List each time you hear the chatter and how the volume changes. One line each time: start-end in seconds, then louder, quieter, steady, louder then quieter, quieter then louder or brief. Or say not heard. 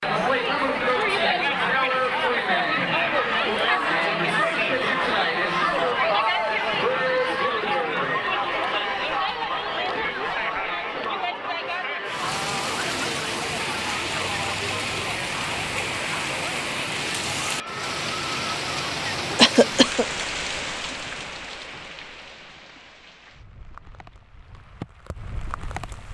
0.0-19.5 quieter.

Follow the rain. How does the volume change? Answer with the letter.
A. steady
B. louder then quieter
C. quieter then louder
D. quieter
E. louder
D.